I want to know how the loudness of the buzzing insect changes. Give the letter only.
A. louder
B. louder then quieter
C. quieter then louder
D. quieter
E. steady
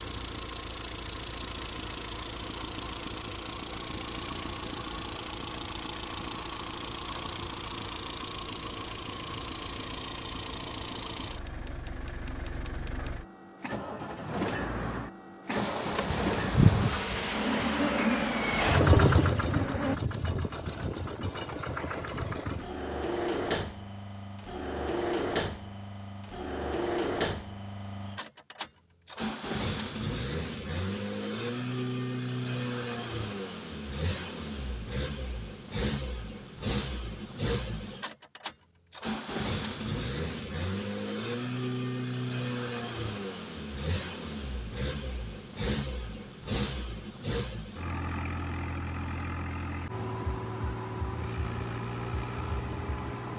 D.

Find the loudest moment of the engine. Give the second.
19 s.